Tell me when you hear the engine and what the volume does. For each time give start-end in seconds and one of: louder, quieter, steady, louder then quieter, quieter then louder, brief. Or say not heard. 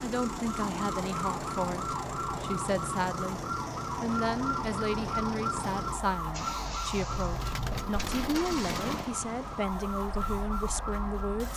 0.0-11.5 quieter.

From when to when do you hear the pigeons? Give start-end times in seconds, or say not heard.
7.1-9.1.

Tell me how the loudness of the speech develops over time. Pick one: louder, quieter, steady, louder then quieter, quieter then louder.
steady.